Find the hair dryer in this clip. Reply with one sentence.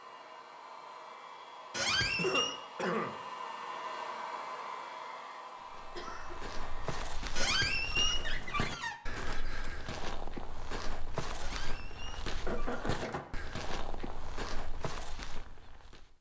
You can hear the hair dryer from 0.0 to 7.0 s.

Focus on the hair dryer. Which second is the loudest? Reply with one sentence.
The volume of the hair dryer peaks at 4 seconds.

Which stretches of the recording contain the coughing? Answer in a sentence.
You can hear the coughing from 2.1 to 3.1 s, from 6.0 to 6.5 s and from 12.4 to 13.2 s.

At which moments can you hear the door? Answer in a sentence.
The door can be heard from 1.7 to 2.6 s, from 7.3 to 8.9 s and from 11.3 to 13.2 s.